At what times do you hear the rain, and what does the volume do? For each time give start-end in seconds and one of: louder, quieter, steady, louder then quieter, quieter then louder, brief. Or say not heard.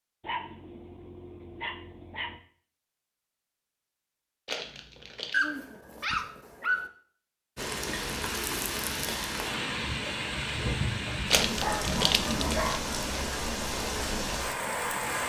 7.5-15.2 steady.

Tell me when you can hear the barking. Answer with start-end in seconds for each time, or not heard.
0.2-2.4, 5.3-6.9, 11.6-12.8.